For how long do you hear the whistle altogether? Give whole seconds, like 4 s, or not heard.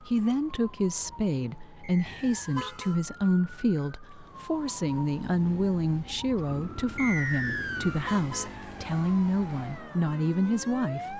2 s.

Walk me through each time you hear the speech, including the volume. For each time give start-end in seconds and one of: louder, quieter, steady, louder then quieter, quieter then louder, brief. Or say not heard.
0.0-11.1 steady.